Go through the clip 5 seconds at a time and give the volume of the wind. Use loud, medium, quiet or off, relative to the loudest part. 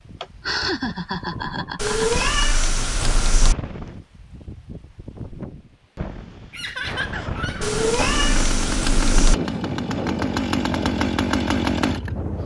medium, loud, loud.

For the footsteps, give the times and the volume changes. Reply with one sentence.
The footsteps can't be heard in this clip.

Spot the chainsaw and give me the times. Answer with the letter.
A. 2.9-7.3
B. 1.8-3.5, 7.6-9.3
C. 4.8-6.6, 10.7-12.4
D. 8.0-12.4
D.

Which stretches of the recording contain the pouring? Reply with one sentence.
You can't hear the pouring here.